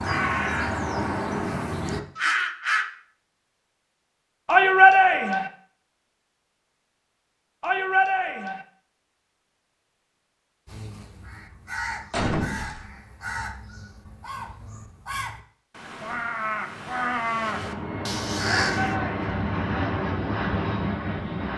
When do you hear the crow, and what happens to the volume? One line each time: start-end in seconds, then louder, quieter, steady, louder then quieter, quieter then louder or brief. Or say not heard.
0.0-2.9 brief
10.7-18.9 louder.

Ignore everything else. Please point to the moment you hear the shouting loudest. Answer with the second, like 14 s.
5 s.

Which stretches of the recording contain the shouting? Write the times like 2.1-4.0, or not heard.
4.5-5.5, 7.6-8.7, 18.7-19.2.